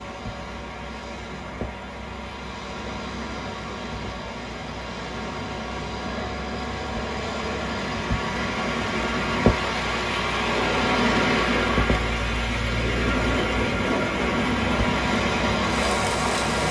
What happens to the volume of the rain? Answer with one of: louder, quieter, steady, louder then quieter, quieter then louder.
louder.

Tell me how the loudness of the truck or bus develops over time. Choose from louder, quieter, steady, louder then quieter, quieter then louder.
louder.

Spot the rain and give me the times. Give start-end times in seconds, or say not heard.
0.0-16.6.